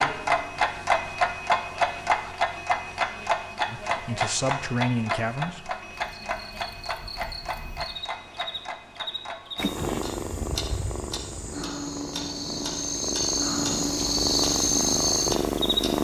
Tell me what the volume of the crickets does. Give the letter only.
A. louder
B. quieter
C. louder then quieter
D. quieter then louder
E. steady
A.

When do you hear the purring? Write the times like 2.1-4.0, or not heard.
9.6-15.9.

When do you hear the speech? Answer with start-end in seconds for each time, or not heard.
3.6-5.8.